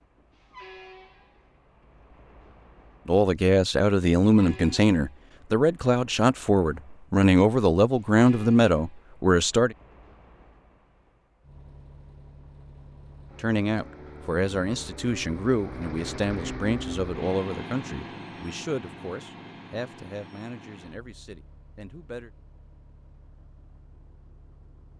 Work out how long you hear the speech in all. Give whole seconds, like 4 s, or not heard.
16 s.